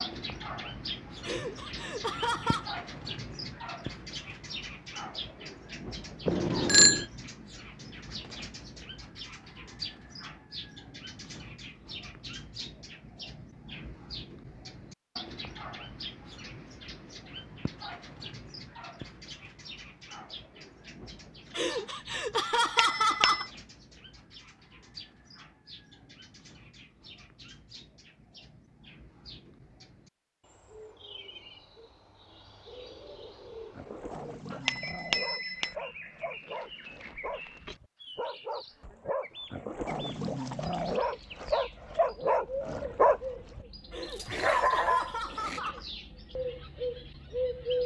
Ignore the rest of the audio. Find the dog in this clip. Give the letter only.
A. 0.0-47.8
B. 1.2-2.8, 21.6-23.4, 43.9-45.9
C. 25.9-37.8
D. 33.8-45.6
D.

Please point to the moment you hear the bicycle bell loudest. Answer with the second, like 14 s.
7 s.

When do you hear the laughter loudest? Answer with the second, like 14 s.
23 s.